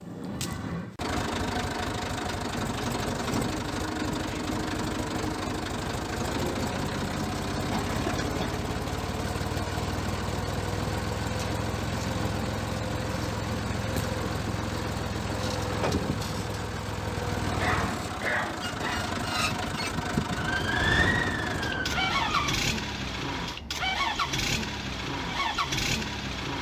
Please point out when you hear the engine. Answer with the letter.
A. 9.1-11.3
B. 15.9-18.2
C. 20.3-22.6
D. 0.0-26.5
D.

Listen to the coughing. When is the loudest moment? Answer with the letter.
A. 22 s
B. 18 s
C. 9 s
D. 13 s
B.